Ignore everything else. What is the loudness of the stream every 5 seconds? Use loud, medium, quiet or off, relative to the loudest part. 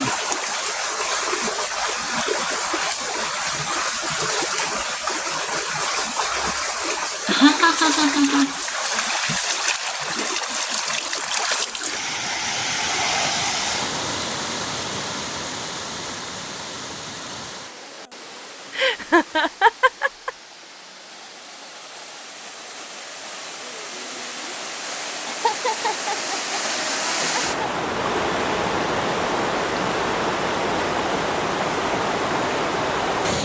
loud, loud, loud, medium, quiet, loud, loud.